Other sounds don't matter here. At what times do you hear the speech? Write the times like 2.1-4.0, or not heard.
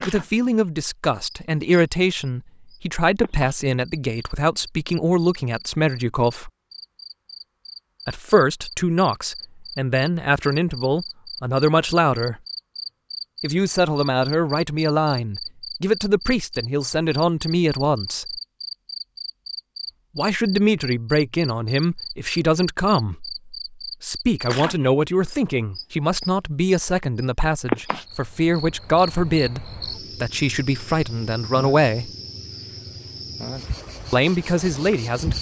0.1-6.5, 8.1-12.4, 13.4-18.4, 20.1-32.1, 34.1-35.3.